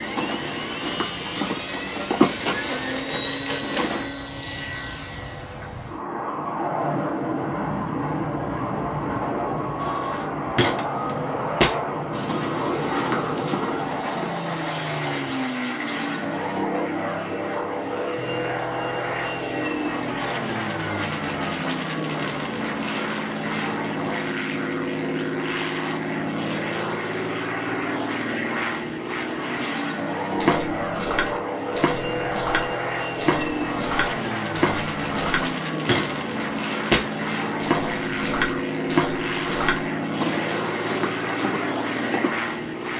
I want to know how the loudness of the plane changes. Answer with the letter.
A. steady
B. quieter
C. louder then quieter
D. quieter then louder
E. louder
A.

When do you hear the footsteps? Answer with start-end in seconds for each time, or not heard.
0.0-4.1, 9.8-14.3, 30.4-42.3.